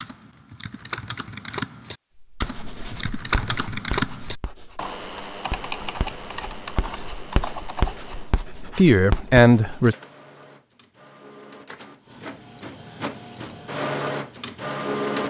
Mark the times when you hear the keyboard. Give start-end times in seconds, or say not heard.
0.0-8.3.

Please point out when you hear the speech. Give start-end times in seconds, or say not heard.
8.8-9.9.